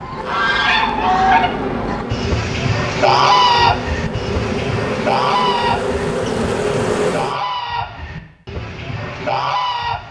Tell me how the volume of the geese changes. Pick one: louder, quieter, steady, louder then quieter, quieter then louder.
quieter.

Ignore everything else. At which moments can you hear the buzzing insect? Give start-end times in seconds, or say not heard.
0.0-7.3.